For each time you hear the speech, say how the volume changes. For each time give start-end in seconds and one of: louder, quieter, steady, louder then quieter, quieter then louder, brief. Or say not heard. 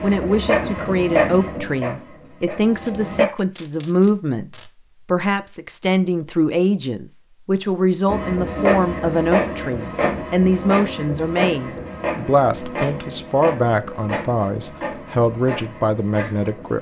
0.0-16.7 steady.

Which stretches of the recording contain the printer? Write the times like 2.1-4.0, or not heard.
0.0-3.2, 8.1-16.7.